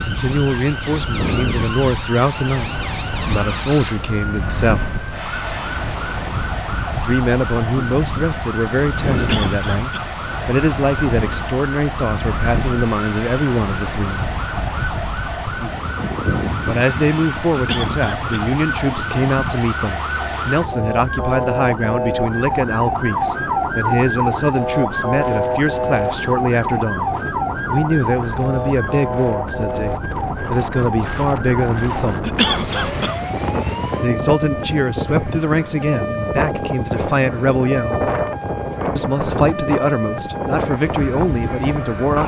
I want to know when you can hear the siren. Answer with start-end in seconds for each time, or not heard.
0.0-42.2.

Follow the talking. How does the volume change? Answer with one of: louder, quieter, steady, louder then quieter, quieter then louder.
steady.